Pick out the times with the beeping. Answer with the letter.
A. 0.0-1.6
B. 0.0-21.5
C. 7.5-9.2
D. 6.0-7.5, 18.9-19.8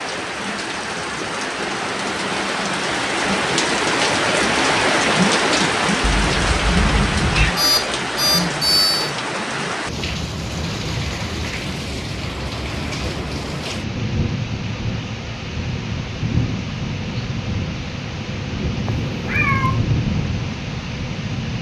C.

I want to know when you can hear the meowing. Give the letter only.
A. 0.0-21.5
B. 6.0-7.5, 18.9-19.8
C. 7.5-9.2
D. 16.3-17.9
B.